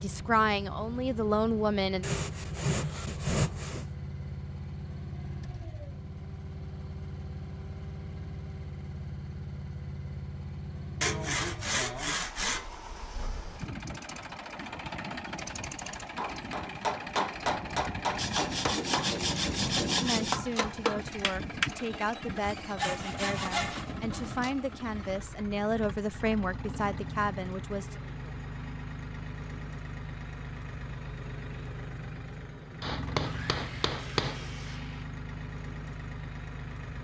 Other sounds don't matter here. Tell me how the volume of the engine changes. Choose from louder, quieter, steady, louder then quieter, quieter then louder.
steady.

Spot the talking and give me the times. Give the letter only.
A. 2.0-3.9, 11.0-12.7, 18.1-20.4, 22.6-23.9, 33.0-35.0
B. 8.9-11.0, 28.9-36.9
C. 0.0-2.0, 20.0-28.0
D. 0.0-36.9
C.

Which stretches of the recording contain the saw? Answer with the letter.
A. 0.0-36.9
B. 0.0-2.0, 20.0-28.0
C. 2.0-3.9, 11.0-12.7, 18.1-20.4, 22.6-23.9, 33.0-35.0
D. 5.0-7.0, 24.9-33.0
C.